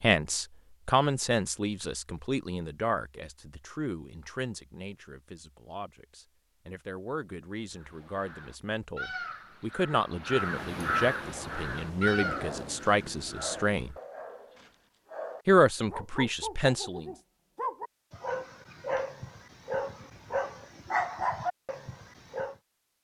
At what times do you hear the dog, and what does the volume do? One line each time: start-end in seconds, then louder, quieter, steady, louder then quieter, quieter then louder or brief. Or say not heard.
12.2-22.6 louder.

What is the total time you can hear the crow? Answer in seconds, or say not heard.
6 s.